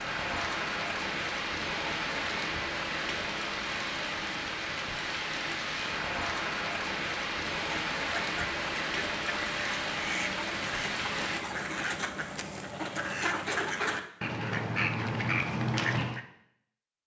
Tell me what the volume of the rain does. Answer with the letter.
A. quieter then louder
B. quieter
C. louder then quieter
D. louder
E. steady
E.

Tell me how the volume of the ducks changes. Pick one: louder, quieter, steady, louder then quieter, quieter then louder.
louder.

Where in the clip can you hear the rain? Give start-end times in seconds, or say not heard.
0.0-11.4.